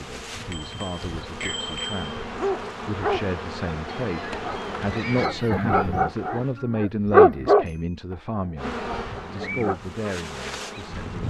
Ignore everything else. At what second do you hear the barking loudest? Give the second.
7 s.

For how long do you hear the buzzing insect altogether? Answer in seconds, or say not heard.
9 s.